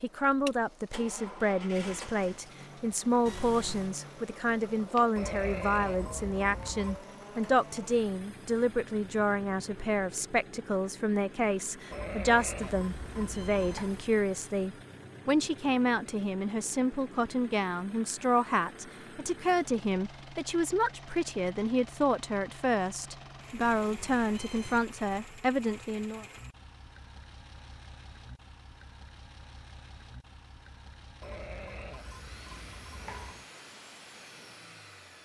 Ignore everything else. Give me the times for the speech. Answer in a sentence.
You can hear the speech from 0.0 to 26.2 s.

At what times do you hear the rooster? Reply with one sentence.
The rooster can't be heard in this clip.